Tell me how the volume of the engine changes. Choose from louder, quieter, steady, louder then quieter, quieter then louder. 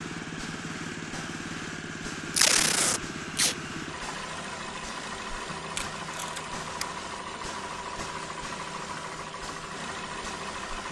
steady.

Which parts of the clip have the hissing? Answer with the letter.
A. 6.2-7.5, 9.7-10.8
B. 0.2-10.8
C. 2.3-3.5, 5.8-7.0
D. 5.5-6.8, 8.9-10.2
B.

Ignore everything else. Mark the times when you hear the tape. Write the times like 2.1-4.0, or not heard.
2.3-3.5, 5.8-7.0.